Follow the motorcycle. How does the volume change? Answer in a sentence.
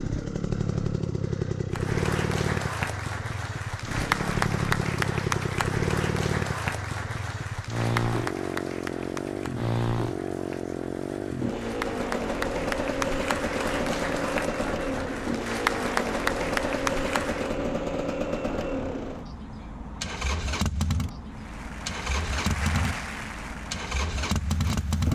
The volume of the motorcycle stays about the same.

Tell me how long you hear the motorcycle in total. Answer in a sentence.
You can hear the motorcycle for 25 seconds altogether.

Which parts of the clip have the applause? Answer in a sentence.
The applause can be heard from 1.7 to 17.6 s and from 21.2 to 25.1 s.